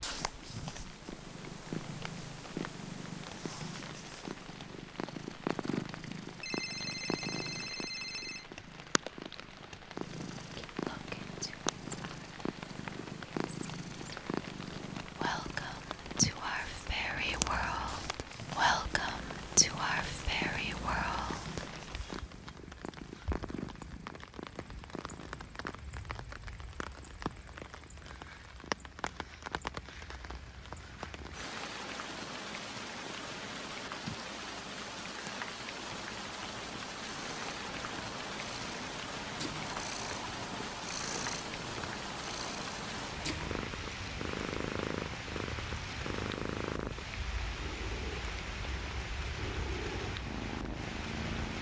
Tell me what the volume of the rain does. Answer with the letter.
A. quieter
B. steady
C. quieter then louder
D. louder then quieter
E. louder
E.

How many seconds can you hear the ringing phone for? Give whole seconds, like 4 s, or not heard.
2 s.